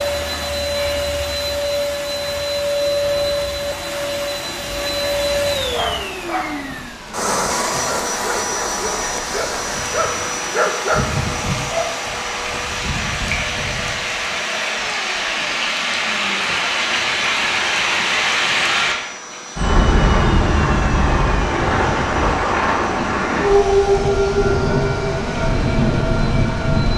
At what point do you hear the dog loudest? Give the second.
11 s.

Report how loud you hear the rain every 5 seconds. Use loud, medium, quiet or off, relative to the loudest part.
quiet, quiet, medium, loud, loud, loud.